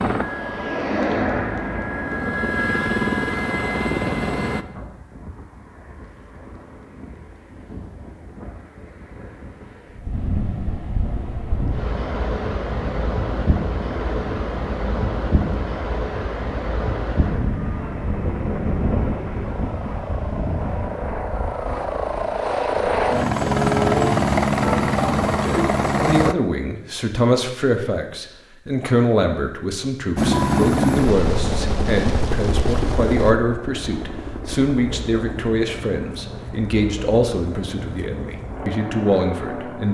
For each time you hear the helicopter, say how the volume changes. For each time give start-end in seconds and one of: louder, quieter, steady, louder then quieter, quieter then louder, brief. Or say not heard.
0.0-4.7 louder
11.0-26.4 louder
30.1-39.8 quieter.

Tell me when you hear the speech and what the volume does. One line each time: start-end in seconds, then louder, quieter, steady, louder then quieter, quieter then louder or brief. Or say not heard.
25.2-39.8 steady.